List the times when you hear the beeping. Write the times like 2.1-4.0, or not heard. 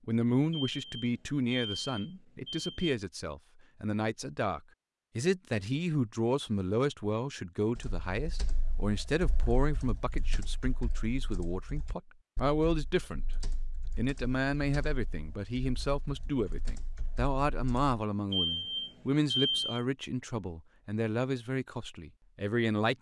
0.5-3.0, 18.3-19.9.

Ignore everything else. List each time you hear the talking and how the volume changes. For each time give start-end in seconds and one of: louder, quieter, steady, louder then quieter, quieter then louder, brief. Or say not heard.
0.1-22.9 steady.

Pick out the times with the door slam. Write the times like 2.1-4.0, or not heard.
not heard.